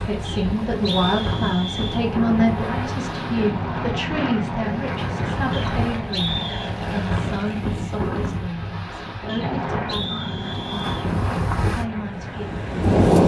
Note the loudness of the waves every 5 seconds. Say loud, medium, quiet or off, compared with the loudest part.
medium, medium, loud.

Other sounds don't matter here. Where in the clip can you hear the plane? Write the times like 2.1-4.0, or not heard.
0.2-7.7, 9.3-12.9.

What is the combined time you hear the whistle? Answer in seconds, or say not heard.
5 s.